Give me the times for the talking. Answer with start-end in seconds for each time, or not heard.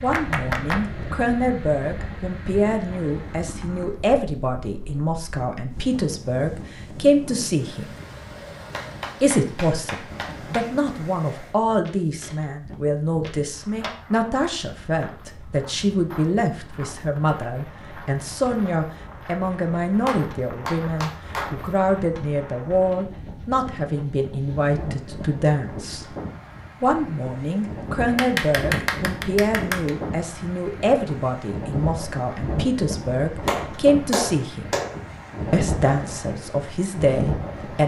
0.0-7.9, 9.2-26.1, 26.8-34.7, 35.5-37.8.